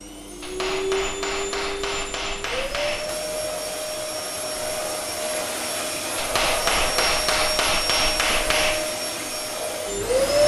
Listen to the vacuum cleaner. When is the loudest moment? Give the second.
10 s.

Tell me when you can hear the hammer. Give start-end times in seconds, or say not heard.
0.4-3.1, 6.2-8.8.